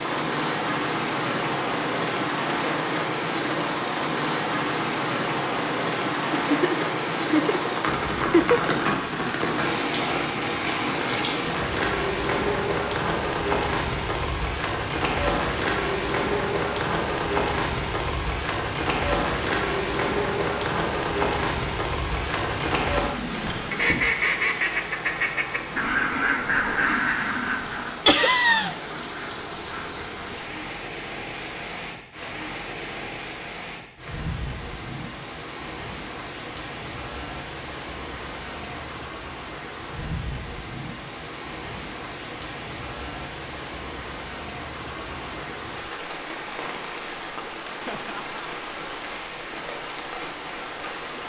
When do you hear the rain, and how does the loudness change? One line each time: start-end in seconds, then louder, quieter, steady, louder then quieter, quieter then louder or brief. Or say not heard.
0.0-51.2 quieter.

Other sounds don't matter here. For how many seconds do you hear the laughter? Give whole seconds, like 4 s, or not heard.
4 s.